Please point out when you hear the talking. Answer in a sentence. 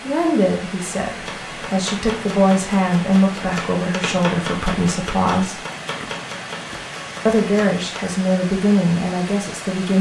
The talking can be heard from 0.0 to 5.6 s and from 7.2 to 9.9 s.